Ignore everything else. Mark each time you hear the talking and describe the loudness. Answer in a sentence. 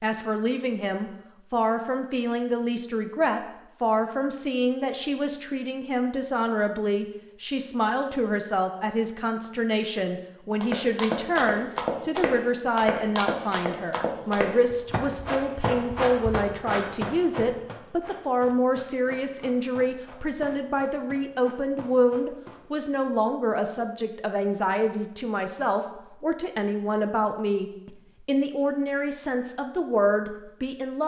The talking can be heard from 0.0 to 31.0 s, at a steady volume.